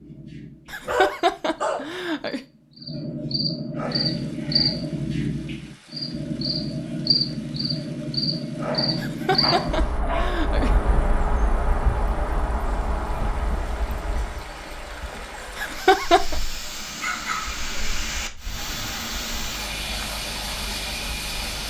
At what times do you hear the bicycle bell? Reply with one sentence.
The bicycle bell can't be heard in this clip.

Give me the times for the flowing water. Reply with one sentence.
You can hear the flowing water from 3.8 to 21.6 s.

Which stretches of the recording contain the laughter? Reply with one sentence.
You can hear the laughter from 0.7 to 2.4 s, from 8.9 to 10.8 s and from 15.6 to 16.4 s.